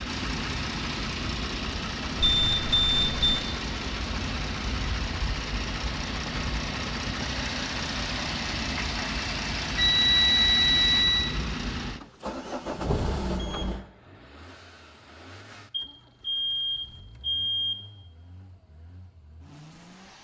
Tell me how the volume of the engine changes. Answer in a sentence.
The loudness of the engine goes down.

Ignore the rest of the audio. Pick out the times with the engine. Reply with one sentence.
You can hear the engine from 0.0 to 20.2 s.